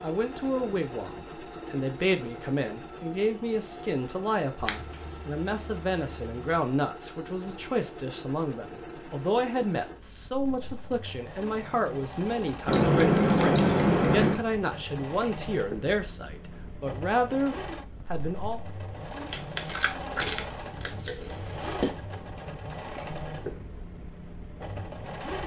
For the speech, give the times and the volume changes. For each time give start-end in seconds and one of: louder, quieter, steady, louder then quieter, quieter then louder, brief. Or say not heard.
0.0-18.6 steady.